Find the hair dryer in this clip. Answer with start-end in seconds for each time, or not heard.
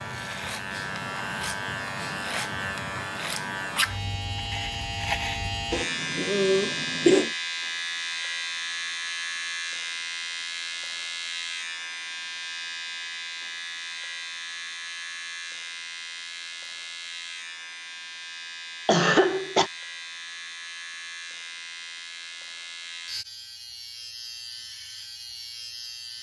not heard.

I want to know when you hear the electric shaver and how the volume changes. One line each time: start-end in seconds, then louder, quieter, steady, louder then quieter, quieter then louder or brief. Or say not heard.
0.0-26.1 quieter.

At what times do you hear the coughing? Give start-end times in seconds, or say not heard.
5.7-7.3, 18.9-19.7.